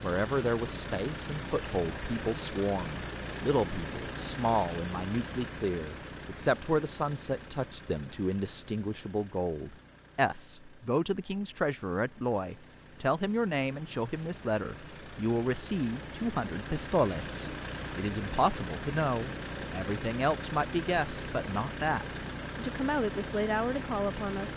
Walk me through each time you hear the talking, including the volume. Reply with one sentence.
The talking can be heard from 0.0 to 24.5 s, at a steady volume.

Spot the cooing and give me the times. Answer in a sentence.
The cooing can't be heard in this clip.